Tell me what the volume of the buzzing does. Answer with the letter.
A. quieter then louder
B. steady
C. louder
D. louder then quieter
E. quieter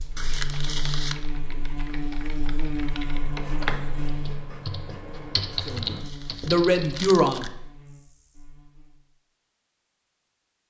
E.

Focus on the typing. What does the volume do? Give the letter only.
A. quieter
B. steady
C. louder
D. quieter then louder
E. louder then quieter
C.